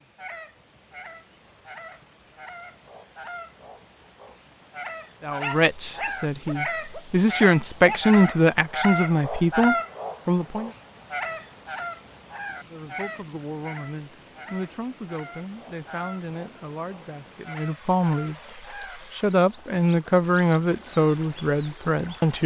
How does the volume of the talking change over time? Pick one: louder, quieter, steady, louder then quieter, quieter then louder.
quieter then louder.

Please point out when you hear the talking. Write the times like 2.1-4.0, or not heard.
5.2-10.7, 12.7-22.4.